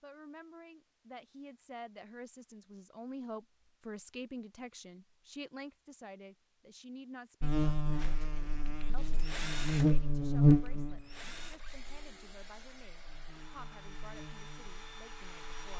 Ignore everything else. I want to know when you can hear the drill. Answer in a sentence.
You can hear the drill from 8.0 to 15.7 s.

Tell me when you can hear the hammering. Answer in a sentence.
You can't hear the hammering here.